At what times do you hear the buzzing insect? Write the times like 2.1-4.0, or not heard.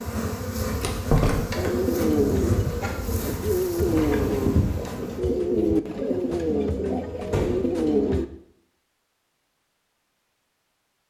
0.0-5.2.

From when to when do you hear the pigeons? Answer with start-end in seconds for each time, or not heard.
1.6-8.2.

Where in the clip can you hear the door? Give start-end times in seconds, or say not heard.
0.8-1.7, 7.3-7.7.